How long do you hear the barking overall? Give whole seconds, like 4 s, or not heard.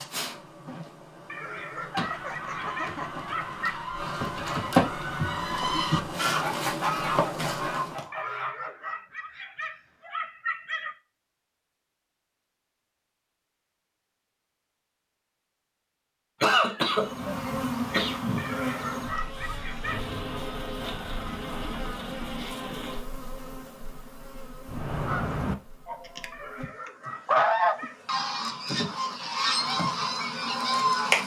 9 s.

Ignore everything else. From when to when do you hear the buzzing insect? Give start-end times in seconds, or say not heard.
0.0-8.1, 16.8-31.2.